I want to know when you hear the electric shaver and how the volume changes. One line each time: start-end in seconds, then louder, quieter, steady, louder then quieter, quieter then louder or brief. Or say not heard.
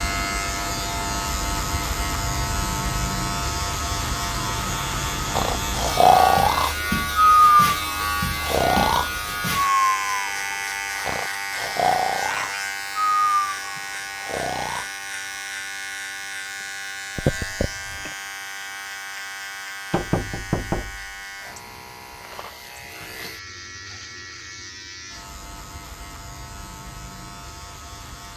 0.0-28.3 quieter.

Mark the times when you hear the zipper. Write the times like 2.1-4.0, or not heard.
not heard.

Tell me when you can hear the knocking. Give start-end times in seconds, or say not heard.
19.9-21.6.